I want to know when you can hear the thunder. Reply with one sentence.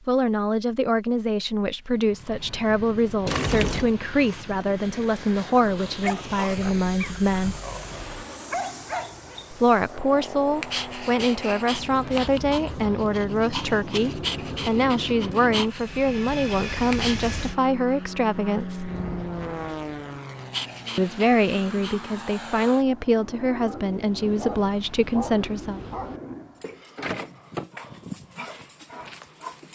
You can hear the thunder from 18.9 to 20.1 s.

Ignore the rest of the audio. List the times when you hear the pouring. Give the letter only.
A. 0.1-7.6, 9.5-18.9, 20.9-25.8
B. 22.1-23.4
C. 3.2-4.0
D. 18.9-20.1
C.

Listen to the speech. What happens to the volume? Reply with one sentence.
The loudness of the speech stays about the same.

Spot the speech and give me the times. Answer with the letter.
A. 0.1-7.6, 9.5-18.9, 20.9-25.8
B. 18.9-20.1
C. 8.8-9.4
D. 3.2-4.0
A.